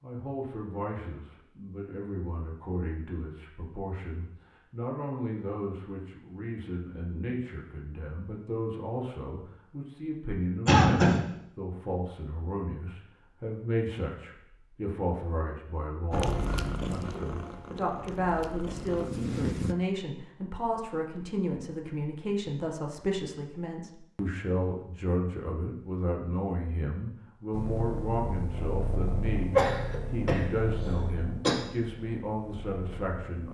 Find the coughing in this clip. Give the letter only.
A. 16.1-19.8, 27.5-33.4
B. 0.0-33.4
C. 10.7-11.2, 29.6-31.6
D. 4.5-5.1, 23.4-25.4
C.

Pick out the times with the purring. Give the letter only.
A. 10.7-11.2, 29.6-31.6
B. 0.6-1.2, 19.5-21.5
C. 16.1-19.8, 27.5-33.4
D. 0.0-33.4
C.